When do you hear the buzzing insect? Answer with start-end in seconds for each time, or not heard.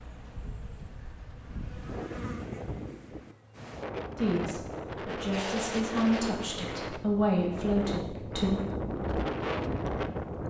0.0-3.8.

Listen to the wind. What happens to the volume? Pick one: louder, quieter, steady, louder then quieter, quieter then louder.
louder.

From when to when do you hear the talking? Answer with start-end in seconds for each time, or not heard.
4.2-8.6.